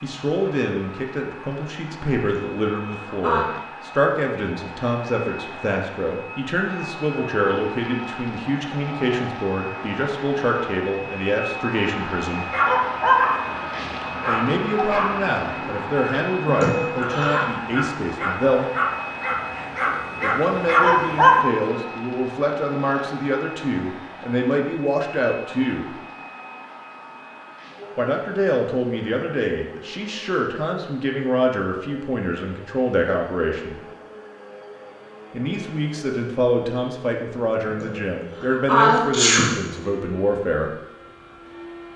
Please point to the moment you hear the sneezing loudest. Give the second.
39 s.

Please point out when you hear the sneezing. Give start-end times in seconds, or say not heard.
2.2-3.5, 16.4-17.4, 37.8-39.6.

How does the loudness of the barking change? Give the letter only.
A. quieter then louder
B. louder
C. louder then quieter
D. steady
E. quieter
A.